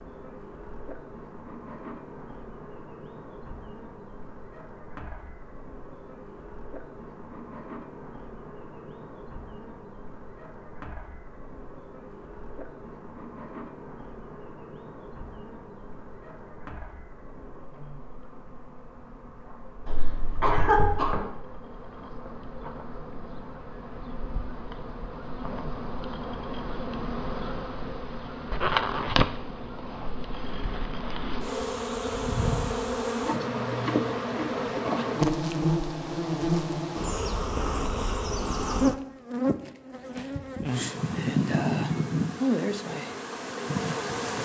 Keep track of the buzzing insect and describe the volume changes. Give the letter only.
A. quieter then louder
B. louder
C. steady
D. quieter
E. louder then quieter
B.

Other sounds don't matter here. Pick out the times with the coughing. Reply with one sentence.
The coughing can be heard from 19.9 to 21.2 s.